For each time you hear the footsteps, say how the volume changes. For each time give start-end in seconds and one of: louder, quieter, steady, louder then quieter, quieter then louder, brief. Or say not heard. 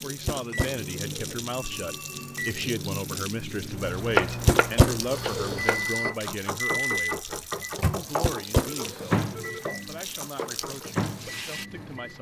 not heard.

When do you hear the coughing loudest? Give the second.
5 s.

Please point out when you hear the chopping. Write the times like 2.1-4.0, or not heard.
4.0-10.9.